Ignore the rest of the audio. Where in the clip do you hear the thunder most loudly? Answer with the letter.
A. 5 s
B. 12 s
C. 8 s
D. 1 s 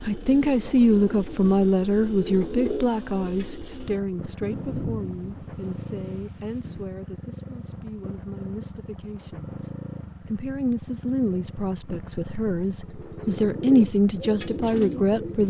A.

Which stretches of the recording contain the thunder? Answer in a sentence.
The thunder can be heard from 4.4 to 6.8 s.